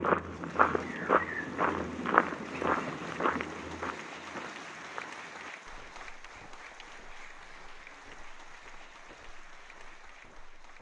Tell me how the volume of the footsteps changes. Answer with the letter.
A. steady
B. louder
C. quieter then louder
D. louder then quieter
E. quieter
E.